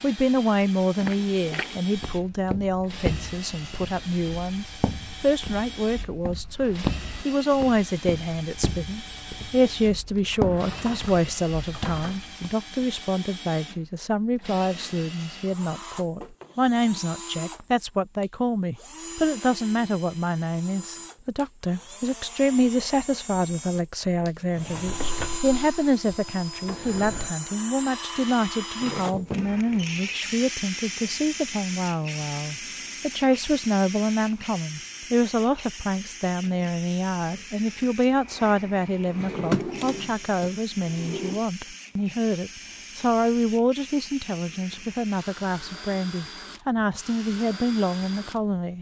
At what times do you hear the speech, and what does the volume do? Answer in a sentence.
You can hear the speech from 0.0 to 48.7 s, at a steady volume.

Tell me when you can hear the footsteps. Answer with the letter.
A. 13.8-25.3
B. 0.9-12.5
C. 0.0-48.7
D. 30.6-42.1
B.